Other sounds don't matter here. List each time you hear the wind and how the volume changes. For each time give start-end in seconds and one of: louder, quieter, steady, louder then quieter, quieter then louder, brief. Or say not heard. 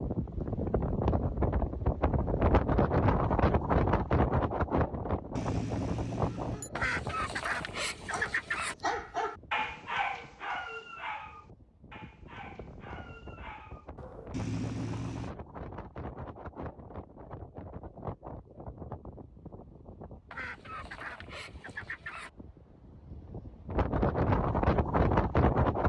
0.0-25.8 quieter then louder.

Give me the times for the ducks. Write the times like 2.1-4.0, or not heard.
6.8-8.8, 20.3-22.3.